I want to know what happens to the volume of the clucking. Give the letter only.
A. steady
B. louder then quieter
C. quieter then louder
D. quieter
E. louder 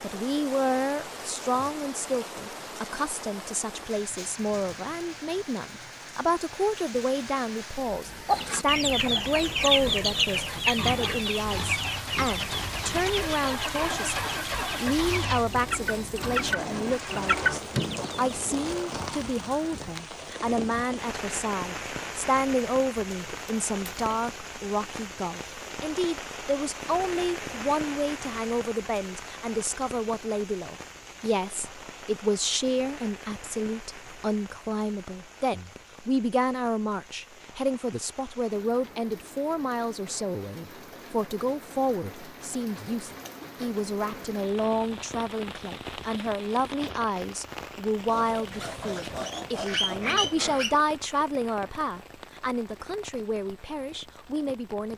C.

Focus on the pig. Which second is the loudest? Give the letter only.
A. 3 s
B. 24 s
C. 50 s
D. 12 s
C.